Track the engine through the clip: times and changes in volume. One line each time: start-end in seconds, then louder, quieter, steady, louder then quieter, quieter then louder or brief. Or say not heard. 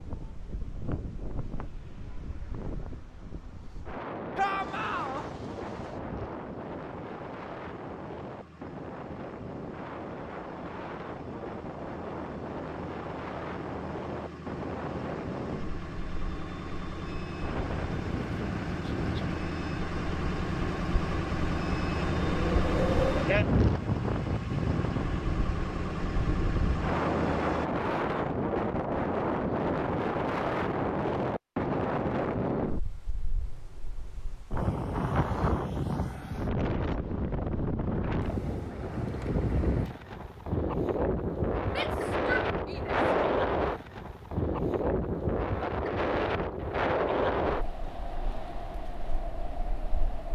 4.6-27.6 louder.